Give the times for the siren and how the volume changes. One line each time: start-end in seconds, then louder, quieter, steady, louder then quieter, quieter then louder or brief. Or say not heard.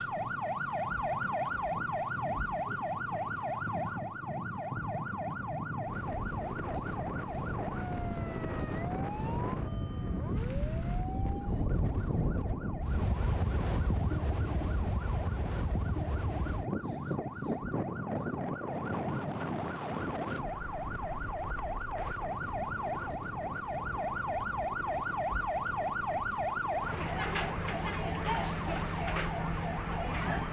0.0-30.4 quieter then louder.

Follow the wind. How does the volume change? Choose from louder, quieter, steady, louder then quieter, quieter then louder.
louder then quieter.